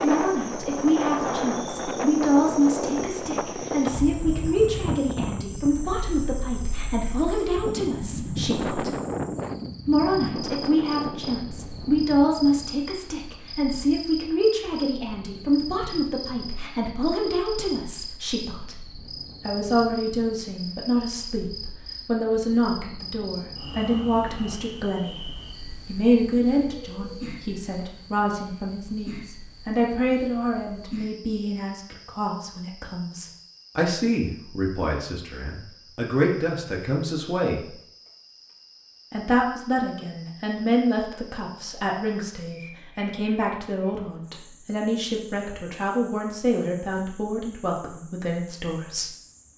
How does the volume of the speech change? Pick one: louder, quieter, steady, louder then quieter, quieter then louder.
steady.